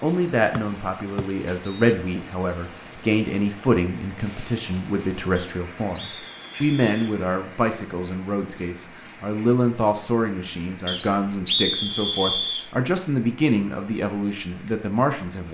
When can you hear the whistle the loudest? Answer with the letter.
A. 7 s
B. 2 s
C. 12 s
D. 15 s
C.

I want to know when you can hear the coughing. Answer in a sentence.
The coughing can't be heard in this clip.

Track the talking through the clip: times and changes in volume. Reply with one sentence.
The talking can be heard from 0.0 to 15.4 s, at a steady volume.